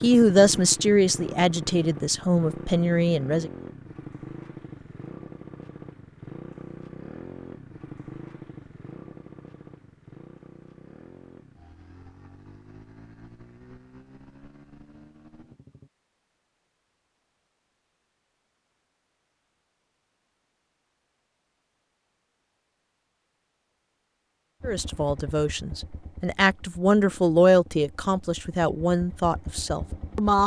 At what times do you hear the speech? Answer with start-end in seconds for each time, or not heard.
0.0-3.5, 24.6-30.4.